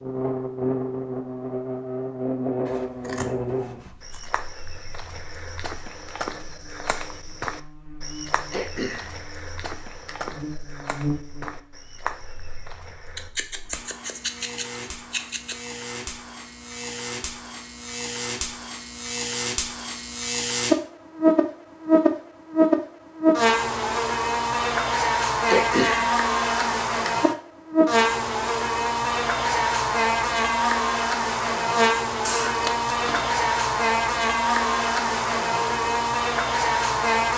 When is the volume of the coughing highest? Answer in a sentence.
The loudest moment of the coughing is at 26 seconds.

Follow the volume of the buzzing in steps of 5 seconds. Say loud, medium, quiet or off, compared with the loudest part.
medium, quiet, quiet, quiet, loud, loud, loud, loud.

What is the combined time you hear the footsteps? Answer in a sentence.
You can hear the footsteps for 9 seconds altogether.